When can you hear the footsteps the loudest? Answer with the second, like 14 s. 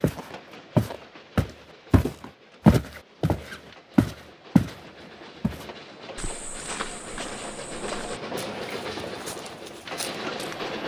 3 s.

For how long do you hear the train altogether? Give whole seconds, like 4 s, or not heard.
11 s.